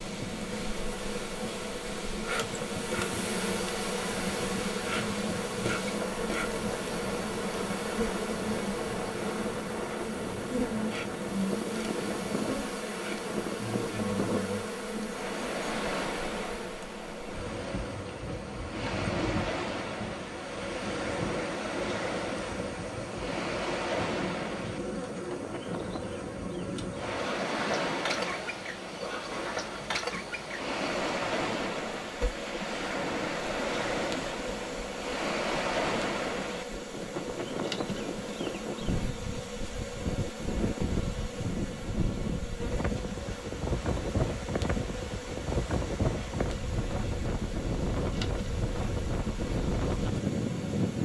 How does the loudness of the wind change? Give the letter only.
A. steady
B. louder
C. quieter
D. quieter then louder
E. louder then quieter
B.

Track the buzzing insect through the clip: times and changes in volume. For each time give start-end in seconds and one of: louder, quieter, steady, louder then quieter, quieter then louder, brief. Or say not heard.
0.0-50.9 quieter.